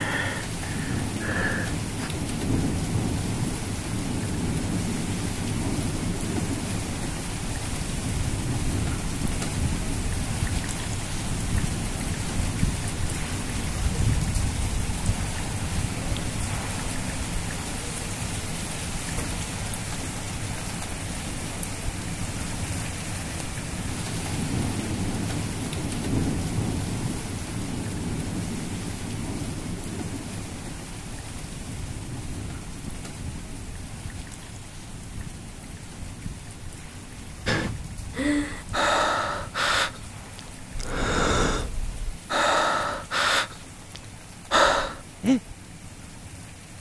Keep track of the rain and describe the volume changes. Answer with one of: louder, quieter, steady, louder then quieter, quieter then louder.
quieter.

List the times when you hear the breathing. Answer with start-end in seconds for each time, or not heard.
0.0-2.1, 37.5-45.4.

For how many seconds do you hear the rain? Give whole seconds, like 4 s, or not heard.
47 s.